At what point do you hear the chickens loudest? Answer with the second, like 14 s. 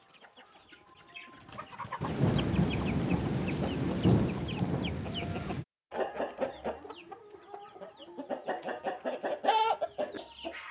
10 s.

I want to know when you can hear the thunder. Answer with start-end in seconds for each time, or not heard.
2.0-5.7.